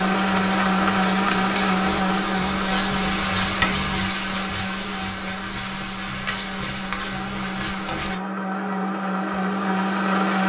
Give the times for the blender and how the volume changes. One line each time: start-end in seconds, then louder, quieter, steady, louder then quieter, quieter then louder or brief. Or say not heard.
0.0-10.4 quieter then louder.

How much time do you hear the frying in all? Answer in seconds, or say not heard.
8 s.